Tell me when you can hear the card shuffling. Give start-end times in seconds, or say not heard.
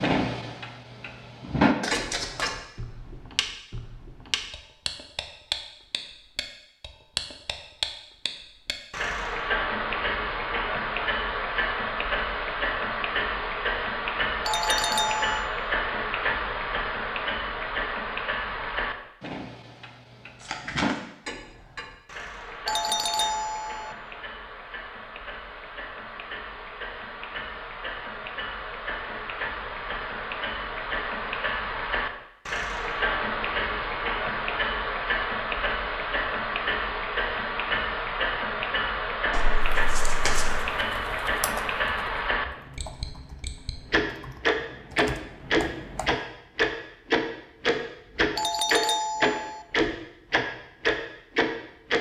1.8-2.5, 20.4-21.0, 39.3-40.6.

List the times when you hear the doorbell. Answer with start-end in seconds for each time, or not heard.
14.4-15.5, 22.6-23.9, 48.4-49.6.